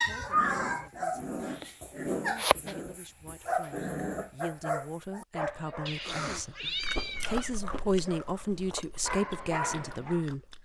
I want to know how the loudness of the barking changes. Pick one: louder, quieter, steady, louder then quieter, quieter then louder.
quieter then louder.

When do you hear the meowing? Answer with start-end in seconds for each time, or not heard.
0.1-0.9, 5.8-7.5.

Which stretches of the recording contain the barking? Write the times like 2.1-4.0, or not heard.
0.0-10.2.